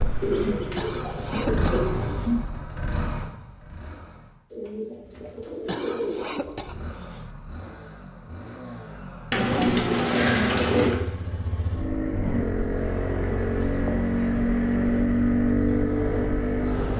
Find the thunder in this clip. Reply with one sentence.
You can't hear the thunder here.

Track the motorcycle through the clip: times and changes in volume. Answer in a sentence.
You can hear the motorcycle from 0.0 to 4.5 s, getting louder then quieter; and from 6.5 to 16.9 s, getting louder.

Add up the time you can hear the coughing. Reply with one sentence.
You can hear the coughing for 4 seconds altogether.